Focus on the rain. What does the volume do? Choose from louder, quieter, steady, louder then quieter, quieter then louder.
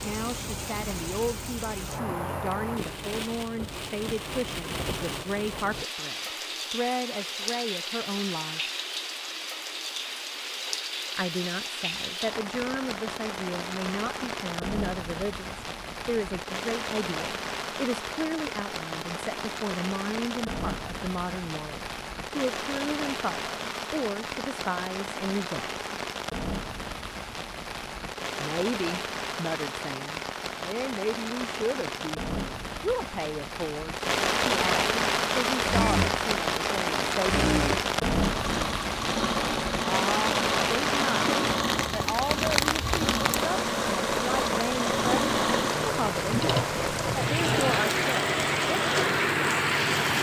louder.